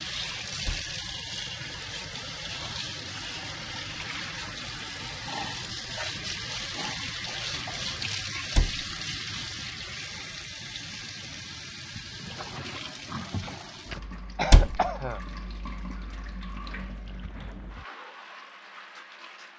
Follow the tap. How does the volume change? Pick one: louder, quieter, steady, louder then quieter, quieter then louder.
quieter.